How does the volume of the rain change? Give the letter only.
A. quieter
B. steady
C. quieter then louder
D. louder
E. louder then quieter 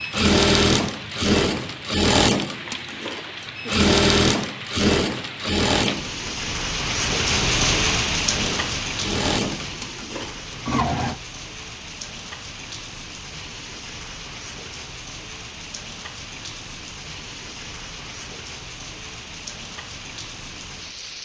E.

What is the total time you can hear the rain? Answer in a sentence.
You can hear the rain for 21 seconds altogether.